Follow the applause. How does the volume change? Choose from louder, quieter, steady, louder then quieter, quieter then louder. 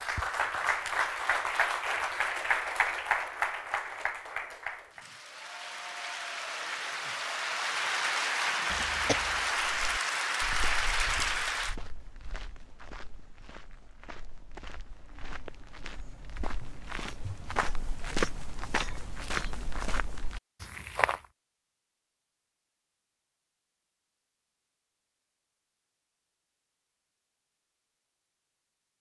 quieter then louder.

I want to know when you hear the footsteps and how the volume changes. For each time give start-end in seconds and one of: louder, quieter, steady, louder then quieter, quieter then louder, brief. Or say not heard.
9.6-21.2 louder.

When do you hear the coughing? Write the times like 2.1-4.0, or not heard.
8.7-9.5.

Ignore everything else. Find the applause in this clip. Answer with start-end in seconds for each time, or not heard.
0.0-11.8.